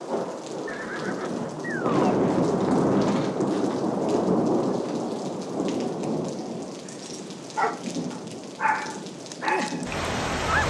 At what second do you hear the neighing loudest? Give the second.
2 s.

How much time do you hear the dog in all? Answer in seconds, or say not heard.
4 s.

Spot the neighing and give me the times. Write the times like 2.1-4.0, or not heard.
0.7-2.1.